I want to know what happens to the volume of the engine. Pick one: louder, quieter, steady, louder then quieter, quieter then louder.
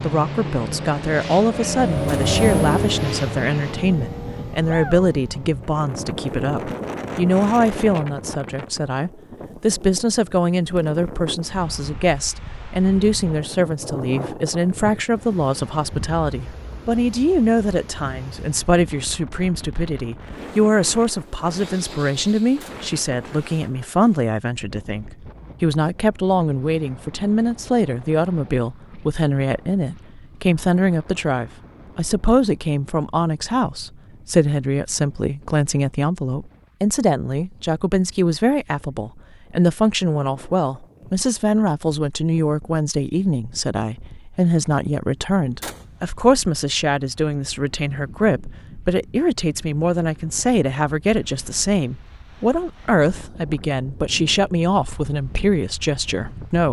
louder then quieter.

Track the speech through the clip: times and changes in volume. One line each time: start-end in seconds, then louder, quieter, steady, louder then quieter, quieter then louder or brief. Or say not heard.
0.0-56.6 steady.